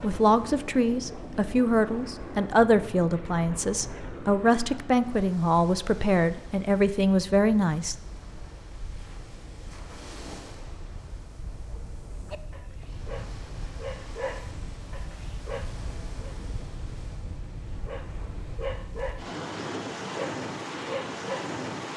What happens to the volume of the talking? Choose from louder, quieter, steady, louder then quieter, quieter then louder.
steady.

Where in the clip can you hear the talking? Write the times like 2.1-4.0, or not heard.
0.0-8.0.